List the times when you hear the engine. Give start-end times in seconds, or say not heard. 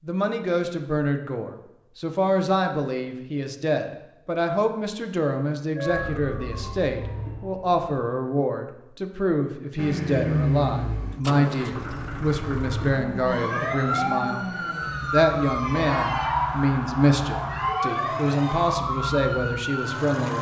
9.8-20.3.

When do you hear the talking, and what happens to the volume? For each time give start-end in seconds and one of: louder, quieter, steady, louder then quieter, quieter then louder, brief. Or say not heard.
0.1-20.3 steady.